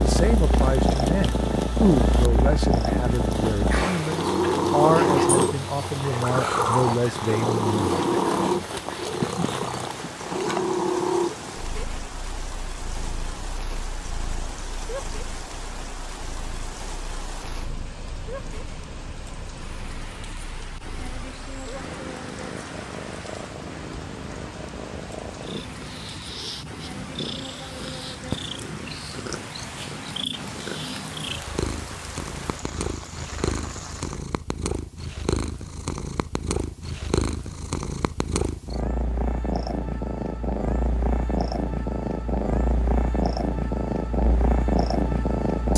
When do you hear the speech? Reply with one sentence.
The speech can be heard from 0.0 to 8.0 s.